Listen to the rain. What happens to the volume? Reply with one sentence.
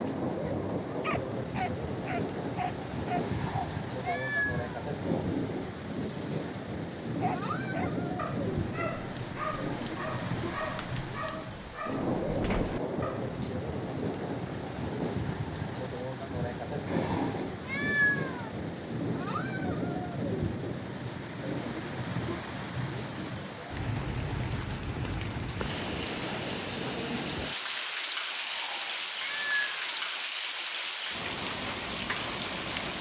The volume of the rain stays about the same.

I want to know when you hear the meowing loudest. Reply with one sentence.
The loudest moment of the meowing is at 18 seconds.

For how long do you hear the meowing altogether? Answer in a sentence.
The meowing can be heard for 5 seconds in total.